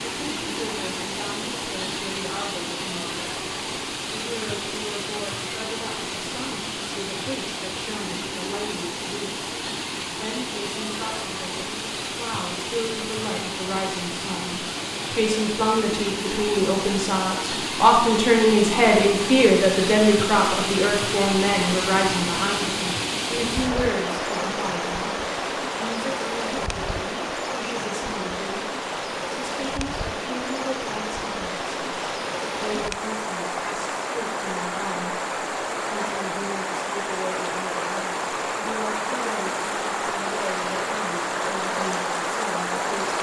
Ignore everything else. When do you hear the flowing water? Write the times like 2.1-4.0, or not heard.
0.0-43.1.